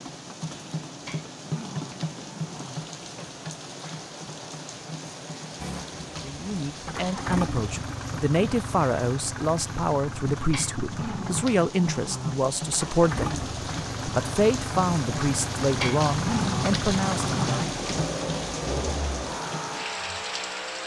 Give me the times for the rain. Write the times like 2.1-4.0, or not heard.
0.0-20.8.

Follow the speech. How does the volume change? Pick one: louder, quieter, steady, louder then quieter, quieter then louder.
steady.